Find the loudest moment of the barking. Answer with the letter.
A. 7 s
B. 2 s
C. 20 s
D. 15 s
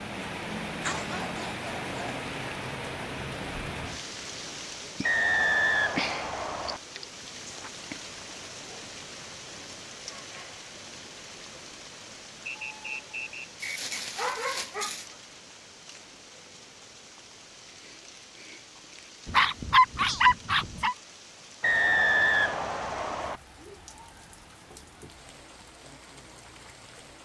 C.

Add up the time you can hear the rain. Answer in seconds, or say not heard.
27 s.